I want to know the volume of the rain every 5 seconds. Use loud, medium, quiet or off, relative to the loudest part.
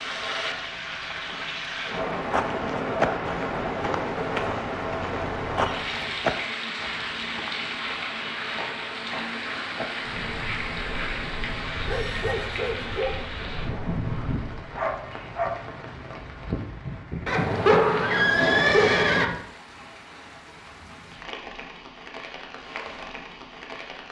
loud, loud, loud, medium, medium.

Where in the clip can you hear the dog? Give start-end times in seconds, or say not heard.
10.0-15.6.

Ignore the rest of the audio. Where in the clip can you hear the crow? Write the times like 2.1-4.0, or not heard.
not heard.